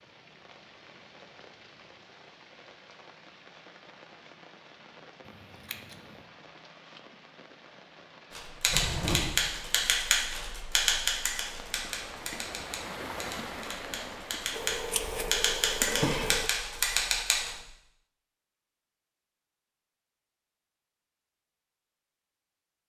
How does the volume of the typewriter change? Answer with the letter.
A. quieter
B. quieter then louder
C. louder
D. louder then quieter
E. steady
B.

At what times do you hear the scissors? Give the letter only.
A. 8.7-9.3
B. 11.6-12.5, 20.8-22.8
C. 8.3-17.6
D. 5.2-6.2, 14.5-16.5
D.